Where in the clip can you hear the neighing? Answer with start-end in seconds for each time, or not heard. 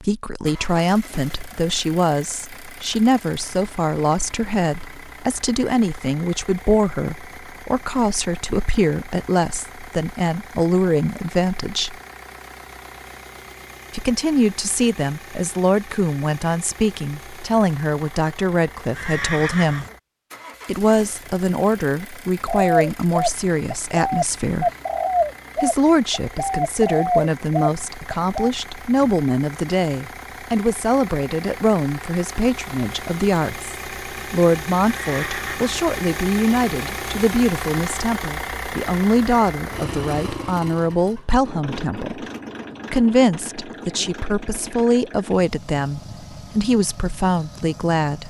18.9-19.9, 34.9-35.7.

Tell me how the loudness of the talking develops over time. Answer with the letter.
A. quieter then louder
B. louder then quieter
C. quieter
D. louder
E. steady
E.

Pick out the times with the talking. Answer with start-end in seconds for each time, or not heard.
0.0-11.9, 13.9-19.9, 20.6-24.7, 25.6-42.2, 42.9-48.2.